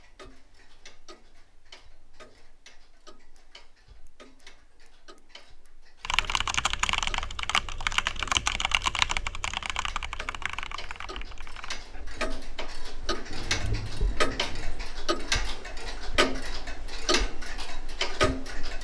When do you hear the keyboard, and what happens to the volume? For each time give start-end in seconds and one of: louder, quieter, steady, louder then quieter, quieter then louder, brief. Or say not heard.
6.0-11.8 quieter.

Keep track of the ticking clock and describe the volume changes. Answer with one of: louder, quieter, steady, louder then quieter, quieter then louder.
louder.